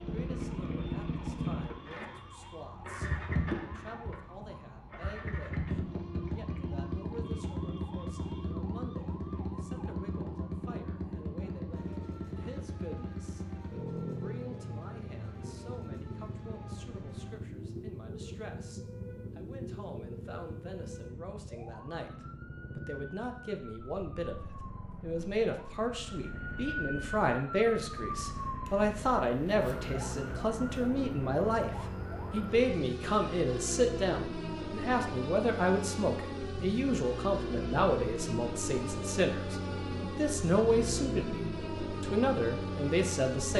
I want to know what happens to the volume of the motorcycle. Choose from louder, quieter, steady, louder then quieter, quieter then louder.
quieter then louder.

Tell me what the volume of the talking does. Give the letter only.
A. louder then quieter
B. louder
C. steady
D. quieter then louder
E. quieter
B.